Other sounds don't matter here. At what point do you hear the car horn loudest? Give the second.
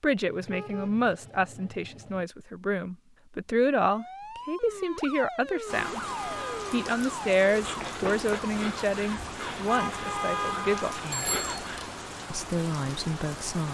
10 s.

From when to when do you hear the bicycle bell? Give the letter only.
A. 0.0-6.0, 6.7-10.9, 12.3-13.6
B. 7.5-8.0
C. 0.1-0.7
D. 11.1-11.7
D.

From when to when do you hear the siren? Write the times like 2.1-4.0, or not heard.
3.8-11.9.